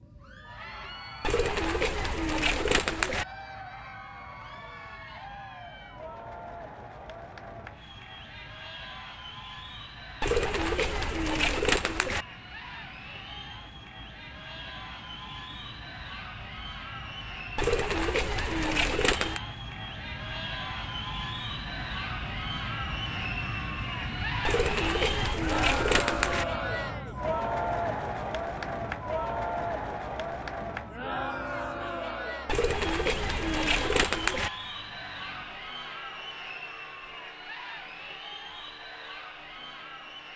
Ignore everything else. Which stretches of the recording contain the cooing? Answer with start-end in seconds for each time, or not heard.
1.2-3.2, 10.2-12.2, 17.6-19.4, 24.4-26.4, 32.5-34.5.